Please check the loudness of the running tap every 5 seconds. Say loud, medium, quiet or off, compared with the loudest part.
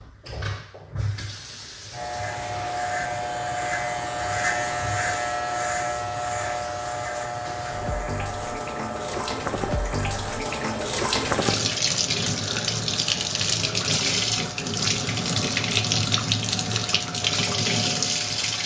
quiet, medium, loud, loud.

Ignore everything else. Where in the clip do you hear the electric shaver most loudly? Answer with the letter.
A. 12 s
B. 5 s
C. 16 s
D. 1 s
B.